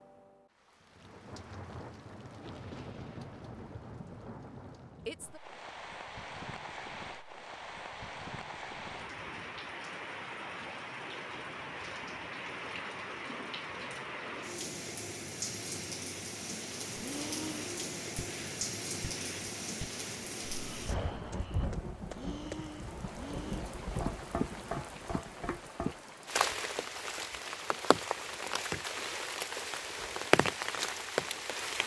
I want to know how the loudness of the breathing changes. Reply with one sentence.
The volume of the breathing goes down, then up.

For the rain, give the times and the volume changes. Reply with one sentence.
The rain can be heard from 0.0 to 31.8 s, getting louder.